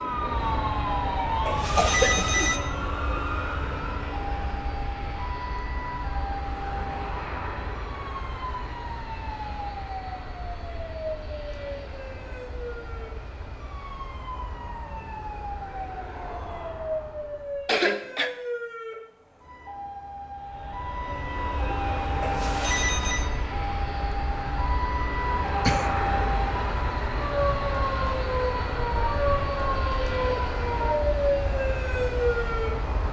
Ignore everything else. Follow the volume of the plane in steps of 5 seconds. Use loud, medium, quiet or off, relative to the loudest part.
loud, medium, medium, medium, loud, loud, loud.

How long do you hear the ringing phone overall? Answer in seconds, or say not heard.
2 s.